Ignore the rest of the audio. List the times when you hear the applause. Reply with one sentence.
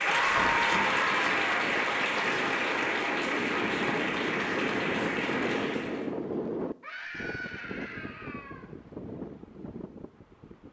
You can hear the applause from 0.0 to 6.1 s.